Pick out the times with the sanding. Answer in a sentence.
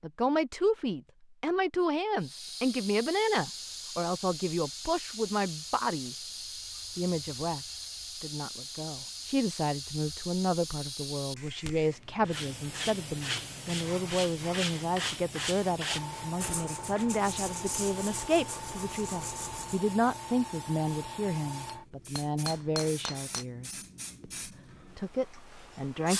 You can hear the sanding from 12.2 to 19.9 s.